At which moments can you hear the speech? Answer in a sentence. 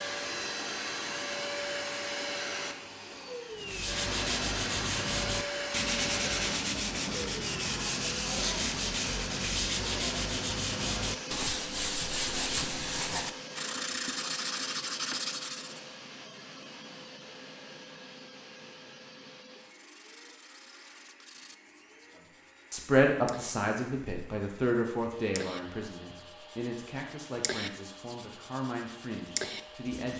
The speech can be heard from 22.7 to 30.1 s.